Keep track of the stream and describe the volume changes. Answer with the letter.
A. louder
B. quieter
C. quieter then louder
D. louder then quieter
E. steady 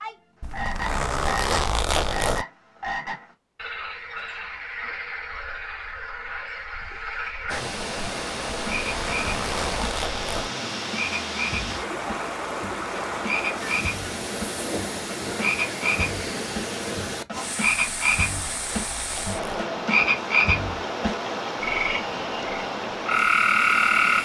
E.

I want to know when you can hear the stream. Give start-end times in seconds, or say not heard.
7.5-24.1.